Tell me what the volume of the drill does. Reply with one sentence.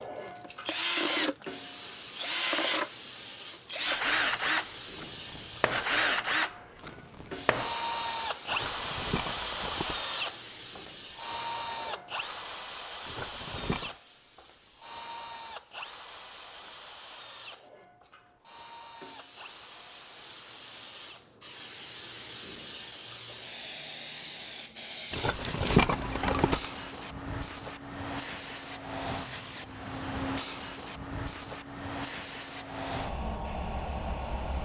The loudness of the drill goes down.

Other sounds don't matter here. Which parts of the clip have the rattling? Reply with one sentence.
The rattling can be heard from 8.5 to 10.1 s, from 13.1 to 13.9 s and from 25.1 to 26.6 s.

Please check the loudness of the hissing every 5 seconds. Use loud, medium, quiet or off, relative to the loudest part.
loud, loud, medium, quiet, loud, loud, loud.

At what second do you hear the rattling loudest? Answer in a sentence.
The loudest moment of the rattling is at 26 seconds.